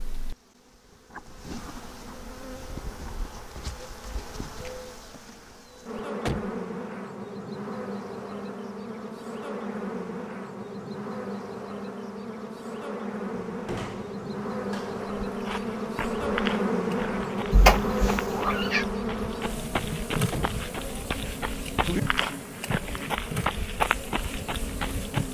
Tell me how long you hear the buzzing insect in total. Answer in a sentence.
You can hear the buzzing insect for 25 seconds altogether.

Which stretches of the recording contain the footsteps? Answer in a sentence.
You can hear the footsteps from 15.2 to 25.2 s.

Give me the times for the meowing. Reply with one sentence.
The meowing can be heard from 17.5 to 18.9 s.